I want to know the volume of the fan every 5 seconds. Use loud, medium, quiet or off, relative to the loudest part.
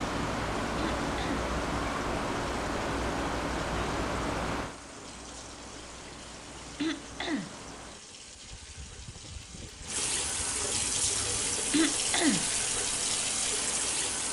loud, quiet, quiet.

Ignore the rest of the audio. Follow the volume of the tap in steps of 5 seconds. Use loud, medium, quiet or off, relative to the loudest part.
quiet, quiet, loud.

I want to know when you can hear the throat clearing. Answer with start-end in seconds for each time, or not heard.
0.8-1.4, 6.8-7.5, 11.7-12.5.